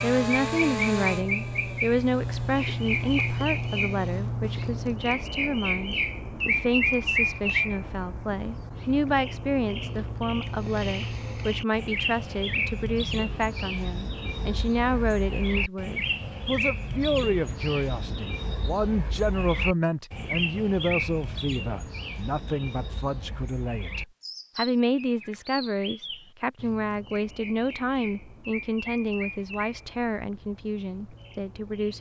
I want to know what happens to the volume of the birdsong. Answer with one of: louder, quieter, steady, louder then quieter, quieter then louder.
quieter.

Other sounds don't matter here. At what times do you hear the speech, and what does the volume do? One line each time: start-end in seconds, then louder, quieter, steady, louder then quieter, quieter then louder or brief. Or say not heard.
0.0-31.9 steady.